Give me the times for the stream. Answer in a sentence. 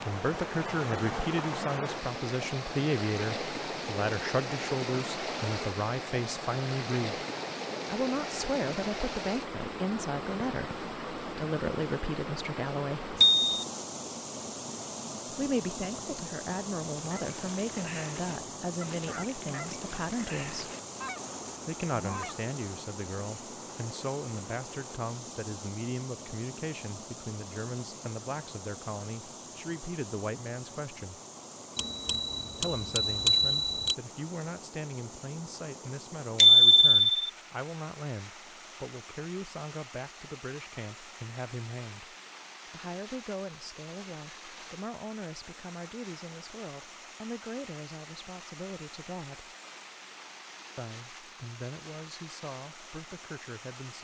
The stream can be heard from 0.0 to 54.0 s.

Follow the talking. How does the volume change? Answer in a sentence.
The loudness of the talking goes down.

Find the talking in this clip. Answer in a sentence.
You can hear the talking from 0.1 to 7.2 s, from 7.8 to 13.2 s, from 15.3 to 20.7 s, from 21.6 to 31.2 s, from 32.6 to 49.5 s and from 50.8 to 54.0 s.